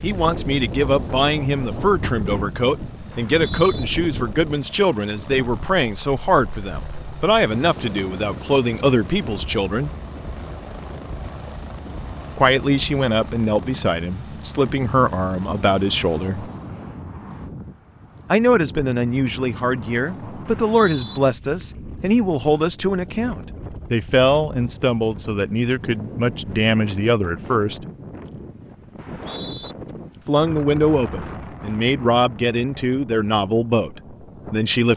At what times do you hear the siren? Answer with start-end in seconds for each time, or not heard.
not heard.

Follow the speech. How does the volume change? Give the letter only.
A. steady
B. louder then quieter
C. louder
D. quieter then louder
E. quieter
A.